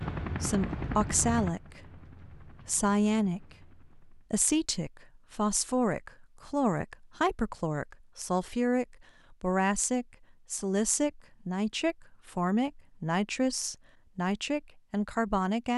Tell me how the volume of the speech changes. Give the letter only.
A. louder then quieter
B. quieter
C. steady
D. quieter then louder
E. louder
C.